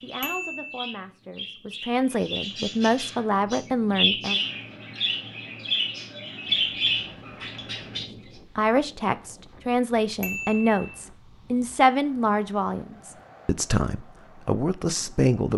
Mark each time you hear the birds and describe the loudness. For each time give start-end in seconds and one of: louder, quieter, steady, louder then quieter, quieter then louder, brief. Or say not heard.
0.0-8.2 louder.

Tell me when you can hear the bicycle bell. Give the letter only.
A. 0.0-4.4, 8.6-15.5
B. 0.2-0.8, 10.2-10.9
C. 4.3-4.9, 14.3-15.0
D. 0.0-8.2
B.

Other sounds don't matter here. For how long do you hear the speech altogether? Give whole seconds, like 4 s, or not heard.
11 s.